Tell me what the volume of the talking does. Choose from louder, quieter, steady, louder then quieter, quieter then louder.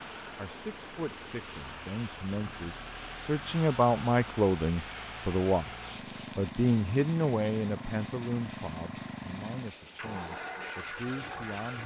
louder then quieter.